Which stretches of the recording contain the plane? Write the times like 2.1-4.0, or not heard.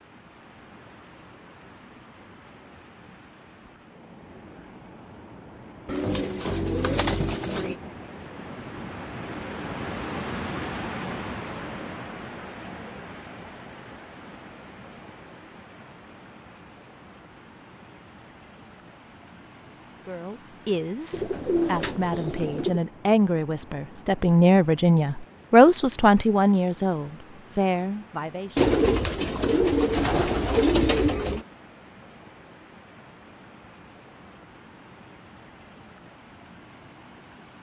not heard.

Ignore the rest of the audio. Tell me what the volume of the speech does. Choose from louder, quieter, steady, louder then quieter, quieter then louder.
louder then quieter.